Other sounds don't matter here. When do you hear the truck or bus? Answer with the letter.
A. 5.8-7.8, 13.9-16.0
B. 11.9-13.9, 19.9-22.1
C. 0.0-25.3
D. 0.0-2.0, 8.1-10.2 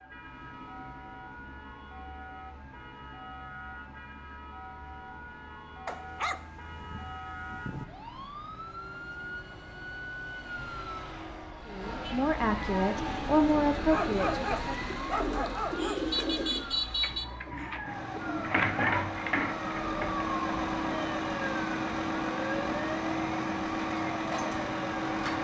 C.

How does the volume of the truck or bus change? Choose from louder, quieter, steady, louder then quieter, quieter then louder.
louder.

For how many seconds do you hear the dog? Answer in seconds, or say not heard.
4 s.